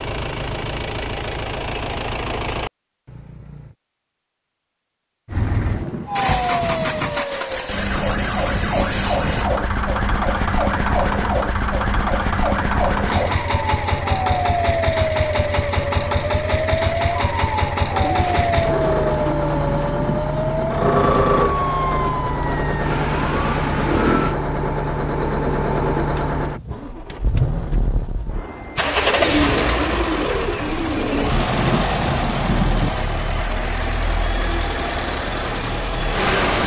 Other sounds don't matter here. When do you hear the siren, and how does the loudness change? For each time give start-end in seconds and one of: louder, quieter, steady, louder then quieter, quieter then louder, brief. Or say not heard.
6.0-24.4 steady.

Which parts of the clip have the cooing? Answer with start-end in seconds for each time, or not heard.
5.7-7.2, 17.9-19.9, 29.1-31.4.